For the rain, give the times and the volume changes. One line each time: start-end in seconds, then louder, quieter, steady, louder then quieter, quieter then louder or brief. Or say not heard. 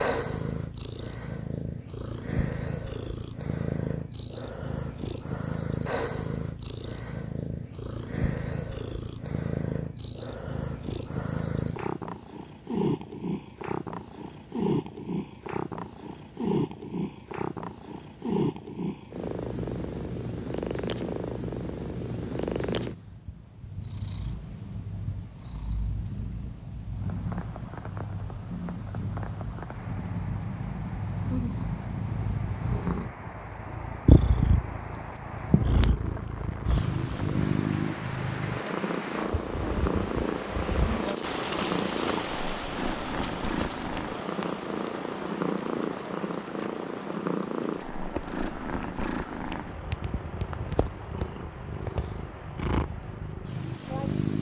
26.9-54.2 louder then quieter.